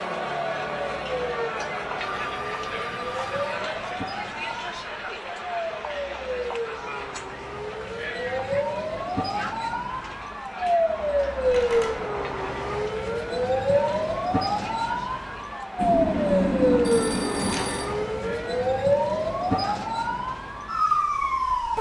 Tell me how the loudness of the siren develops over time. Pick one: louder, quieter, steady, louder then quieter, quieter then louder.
louder.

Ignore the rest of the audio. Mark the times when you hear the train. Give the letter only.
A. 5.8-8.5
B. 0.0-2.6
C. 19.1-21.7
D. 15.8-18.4
D.